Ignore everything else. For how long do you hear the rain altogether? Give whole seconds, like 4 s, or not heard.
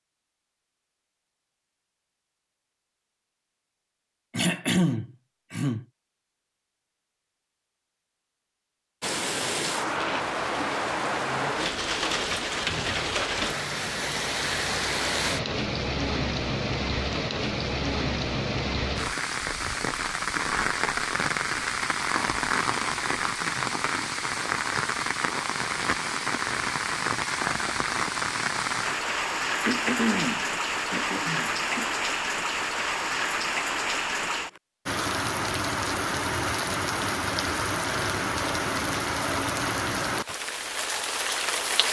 33 s.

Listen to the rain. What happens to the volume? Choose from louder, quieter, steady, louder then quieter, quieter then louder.
steady.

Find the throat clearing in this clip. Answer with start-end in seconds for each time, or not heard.
4.3-5.8, 29.6-31.9.